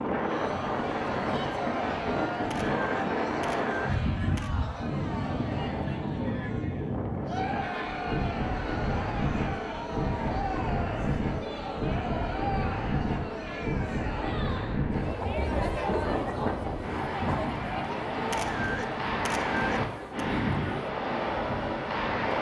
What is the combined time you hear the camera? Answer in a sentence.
The camera can be heard for 4 seconds in total.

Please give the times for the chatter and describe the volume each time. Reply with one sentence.
The chatter can be heard from 0.0 to 22.3 s, at a steady volume.